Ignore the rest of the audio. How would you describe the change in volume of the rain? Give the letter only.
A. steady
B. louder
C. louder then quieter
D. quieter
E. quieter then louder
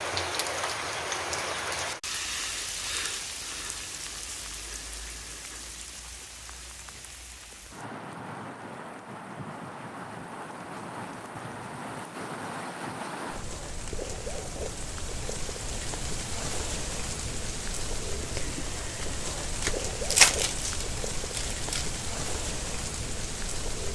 E.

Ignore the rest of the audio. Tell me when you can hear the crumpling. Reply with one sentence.
You can hear the crumpling from 19.6 to 22.0 s.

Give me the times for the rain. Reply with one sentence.
The rain can be heard from 0.0 to 23.9 s.